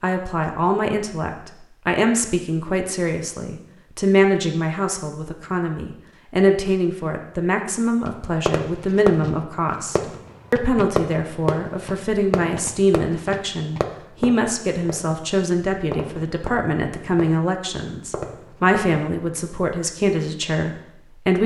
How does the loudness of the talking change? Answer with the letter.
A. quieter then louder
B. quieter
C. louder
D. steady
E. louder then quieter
D.